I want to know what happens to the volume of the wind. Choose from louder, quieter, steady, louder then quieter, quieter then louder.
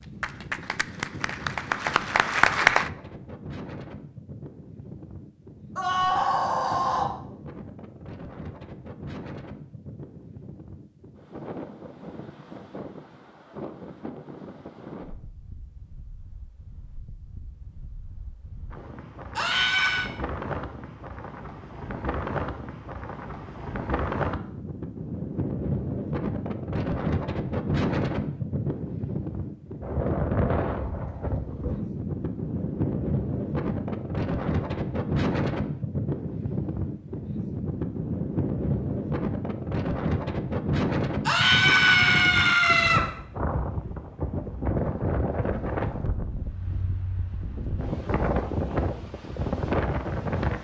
louder.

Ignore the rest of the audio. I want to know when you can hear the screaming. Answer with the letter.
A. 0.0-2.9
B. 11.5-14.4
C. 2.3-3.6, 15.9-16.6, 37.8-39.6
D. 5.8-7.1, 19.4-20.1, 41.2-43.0
D.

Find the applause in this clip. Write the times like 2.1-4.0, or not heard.
0.0-2.9.